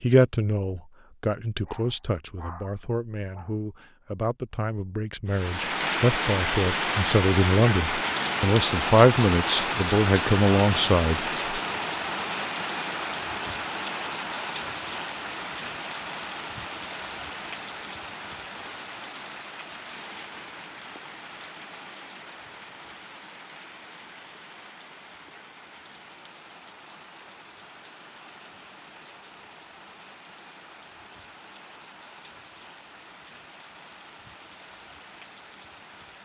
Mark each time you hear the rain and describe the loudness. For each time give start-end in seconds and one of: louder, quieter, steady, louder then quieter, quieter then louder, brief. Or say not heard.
5.2-36.2 quieter.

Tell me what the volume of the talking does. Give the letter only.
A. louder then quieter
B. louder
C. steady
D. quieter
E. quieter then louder
B.